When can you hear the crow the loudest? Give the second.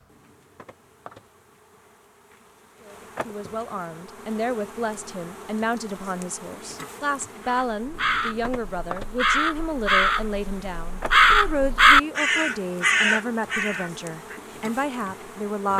12 s.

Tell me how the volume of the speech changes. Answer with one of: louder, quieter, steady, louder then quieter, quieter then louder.
steady.